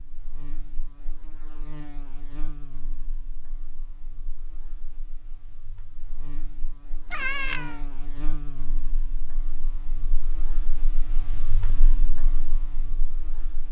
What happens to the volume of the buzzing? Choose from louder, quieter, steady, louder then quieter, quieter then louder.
quieter then louder.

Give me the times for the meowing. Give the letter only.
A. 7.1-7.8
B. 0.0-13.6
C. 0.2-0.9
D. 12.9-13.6
A.